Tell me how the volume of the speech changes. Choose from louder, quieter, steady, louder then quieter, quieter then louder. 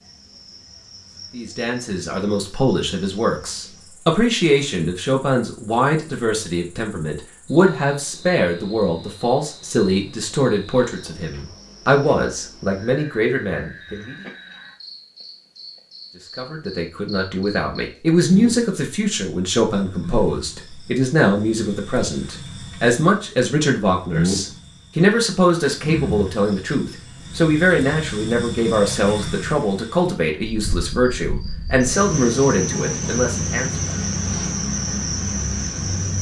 steady.